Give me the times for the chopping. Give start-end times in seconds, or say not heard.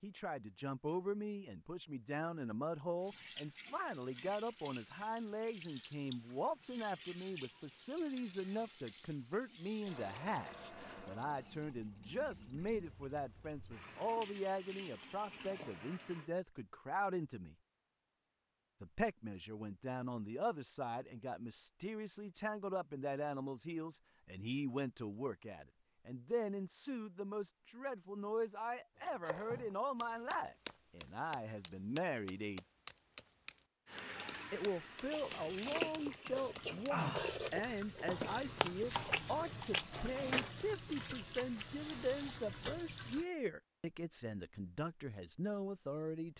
29.2-40.5.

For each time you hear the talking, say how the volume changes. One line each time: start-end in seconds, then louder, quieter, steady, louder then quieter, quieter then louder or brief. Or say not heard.
0.0-17.6 steady
18.8-32.6 steady
34.5-46.3 steady.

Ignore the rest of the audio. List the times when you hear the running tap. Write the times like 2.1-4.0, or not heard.
3.0-16.3, 33.9-43.2.